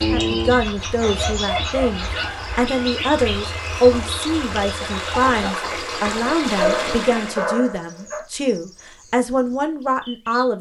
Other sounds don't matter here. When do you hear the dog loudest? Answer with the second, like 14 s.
7 s.